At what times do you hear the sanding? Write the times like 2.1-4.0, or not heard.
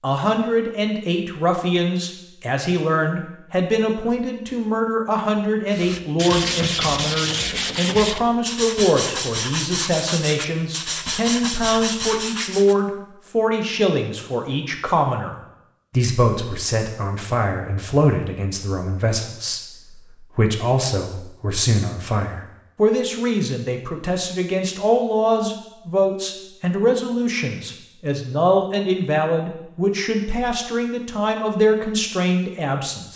5.7-12.8.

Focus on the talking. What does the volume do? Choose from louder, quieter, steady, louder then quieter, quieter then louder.
steady.